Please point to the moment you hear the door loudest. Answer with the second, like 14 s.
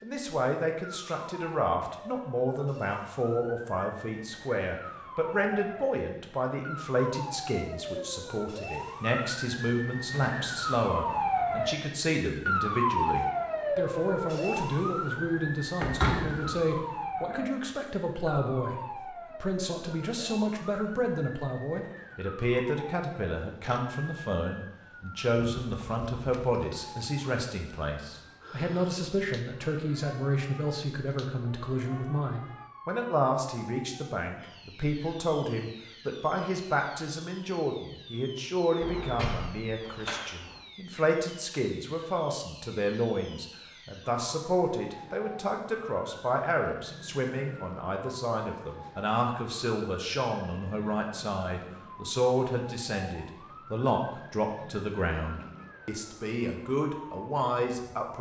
16 s.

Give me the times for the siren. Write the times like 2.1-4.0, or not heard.
0.0-58.1.